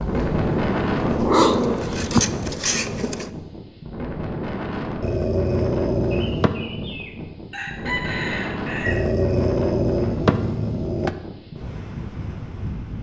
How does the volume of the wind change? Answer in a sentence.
The volume of the wind goes down.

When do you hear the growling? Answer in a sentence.
You can hear the growling from 1.0 to 1.9 s, from 5.0 to 6.5 s and from 8.8 to 11.2 s.